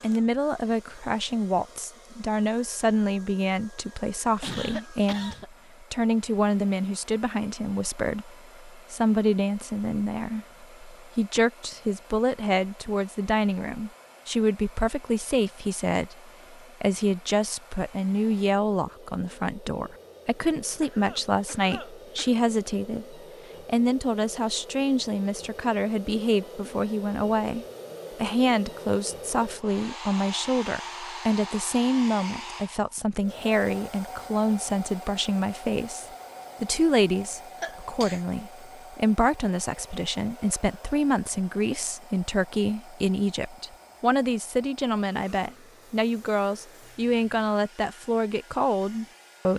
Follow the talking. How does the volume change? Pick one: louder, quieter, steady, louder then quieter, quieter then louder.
steady.